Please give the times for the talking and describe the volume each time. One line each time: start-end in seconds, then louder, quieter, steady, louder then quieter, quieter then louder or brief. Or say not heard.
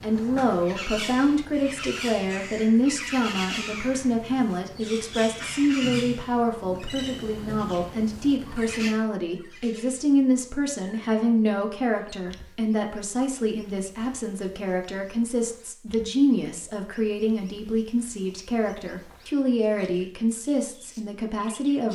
0.0-21.9 steady.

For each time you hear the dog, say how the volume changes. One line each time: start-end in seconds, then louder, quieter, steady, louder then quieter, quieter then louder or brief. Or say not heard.
not heard.